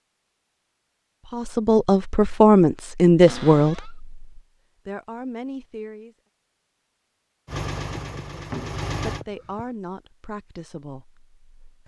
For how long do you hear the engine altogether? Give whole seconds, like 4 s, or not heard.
2 s.